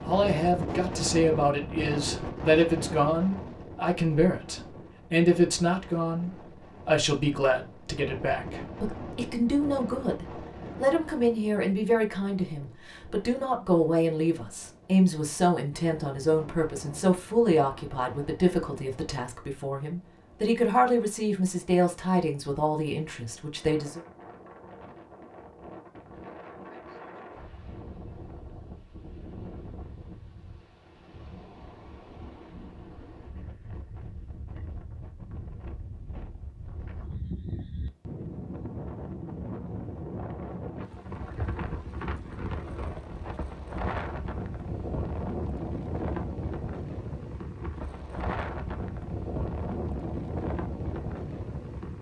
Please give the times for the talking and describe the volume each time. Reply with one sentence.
You can hear the talking from 0.0 to 24.0 s, at a steady volume.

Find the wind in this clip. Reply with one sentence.
You can hear the wind from 0.0 to 51.9 s.